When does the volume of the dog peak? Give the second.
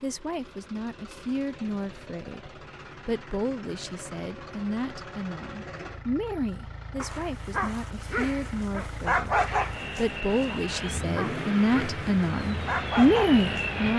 9 s.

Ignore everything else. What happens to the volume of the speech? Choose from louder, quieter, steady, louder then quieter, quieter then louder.
louder.